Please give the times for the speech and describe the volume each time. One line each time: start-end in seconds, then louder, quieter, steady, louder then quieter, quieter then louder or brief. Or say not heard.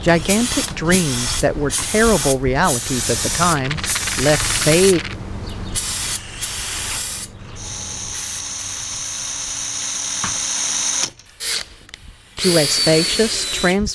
0.0-5.0 steady
12.3-13.9 brief.